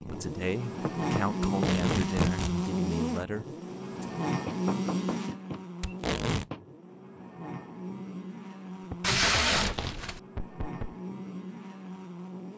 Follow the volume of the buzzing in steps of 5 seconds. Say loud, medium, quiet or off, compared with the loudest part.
loud, medium, medium.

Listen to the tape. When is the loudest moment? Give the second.
9 s.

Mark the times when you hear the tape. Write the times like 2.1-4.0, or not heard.
1.4-2.5, 5.8-6.5, 9.0-10.2.